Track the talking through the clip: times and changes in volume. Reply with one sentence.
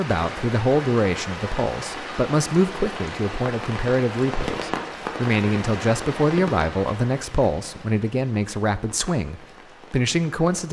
The talking can be heard from 0.0 to 10.6 s, at a steady volume.